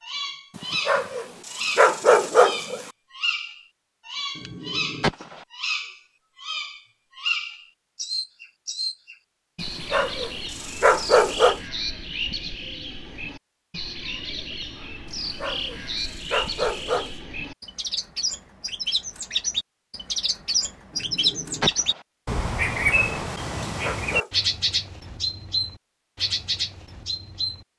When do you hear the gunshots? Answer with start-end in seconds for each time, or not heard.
4.3-5.5, 20.9-22.1.